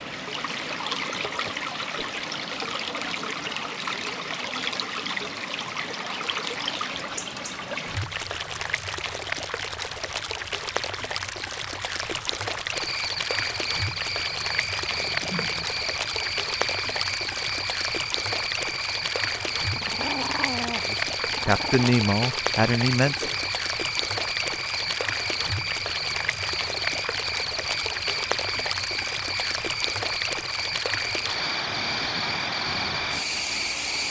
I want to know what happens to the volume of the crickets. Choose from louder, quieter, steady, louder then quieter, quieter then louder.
steady.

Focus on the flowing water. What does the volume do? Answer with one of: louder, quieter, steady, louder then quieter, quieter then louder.
steady.